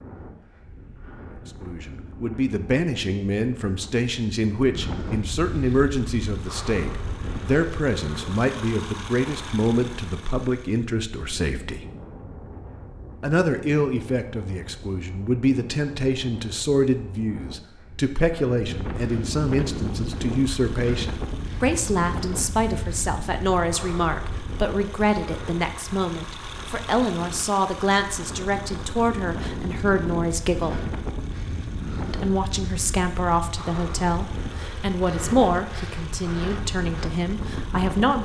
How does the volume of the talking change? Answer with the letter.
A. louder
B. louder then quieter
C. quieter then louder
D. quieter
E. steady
E.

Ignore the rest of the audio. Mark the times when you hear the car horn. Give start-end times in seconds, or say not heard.
not heard.